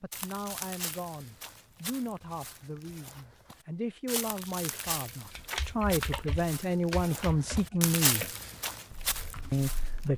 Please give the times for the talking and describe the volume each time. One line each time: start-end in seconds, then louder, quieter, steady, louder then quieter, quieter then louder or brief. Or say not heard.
0.0-8.2 louder
9.5-10.1 brief.